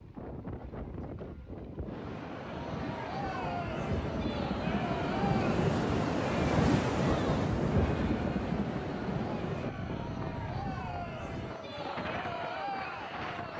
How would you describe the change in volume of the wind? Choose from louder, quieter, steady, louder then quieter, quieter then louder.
louder then quieter.